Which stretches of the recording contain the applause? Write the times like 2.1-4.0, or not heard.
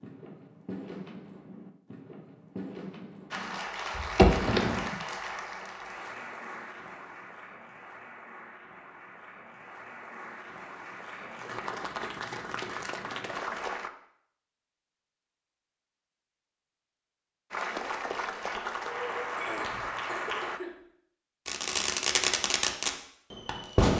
3.3-13.9, 17.5-20.6.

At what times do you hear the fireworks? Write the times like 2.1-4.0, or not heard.
0.0-4.9, 21.4-23.9.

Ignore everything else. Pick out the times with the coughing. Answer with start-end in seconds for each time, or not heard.
19.4-20.8.